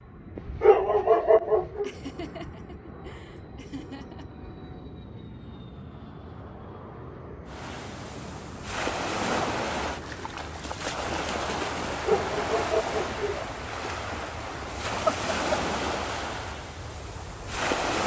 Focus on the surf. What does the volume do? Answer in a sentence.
The loudness of the surf stays about the same.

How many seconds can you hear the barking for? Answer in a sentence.
The barking can be heard for 3 seconds in total.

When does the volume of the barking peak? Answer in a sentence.
The volume of the barking peaks at 1 second.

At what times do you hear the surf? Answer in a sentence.
The surf can be heard from 7.5 to 18.0 s.